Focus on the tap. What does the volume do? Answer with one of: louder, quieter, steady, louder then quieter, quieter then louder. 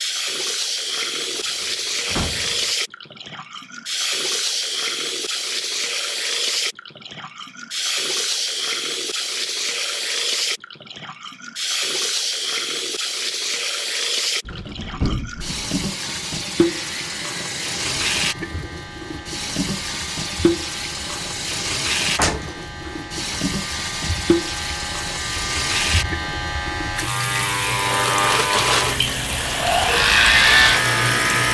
steady.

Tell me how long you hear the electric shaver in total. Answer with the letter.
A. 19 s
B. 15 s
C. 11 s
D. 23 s
B.